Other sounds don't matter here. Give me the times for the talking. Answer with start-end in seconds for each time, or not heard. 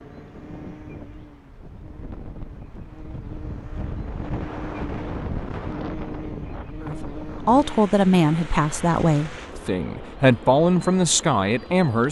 6.8-12.0.